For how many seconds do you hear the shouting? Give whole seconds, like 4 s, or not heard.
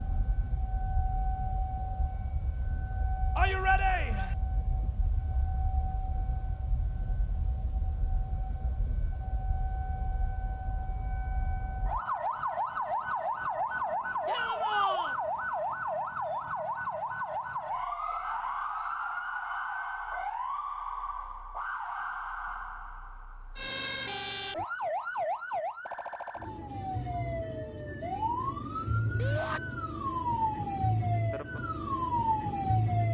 2 s.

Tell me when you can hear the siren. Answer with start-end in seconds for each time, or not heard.
0.0-33.0.